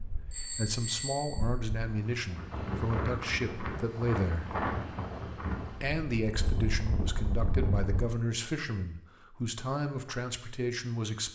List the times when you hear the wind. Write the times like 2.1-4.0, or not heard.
0.0-8.1.